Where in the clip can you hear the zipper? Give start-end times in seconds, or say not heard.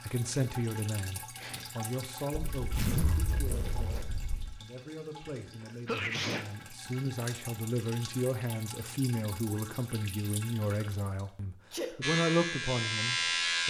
2.3-4.6.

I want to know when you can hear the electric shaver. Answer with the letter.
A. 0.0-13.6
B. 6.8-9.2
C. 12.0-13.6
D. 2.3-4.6
C.